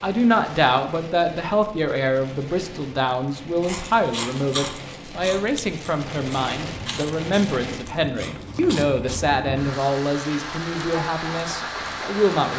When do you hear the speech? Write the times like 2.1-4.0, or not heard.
0.0-12.5.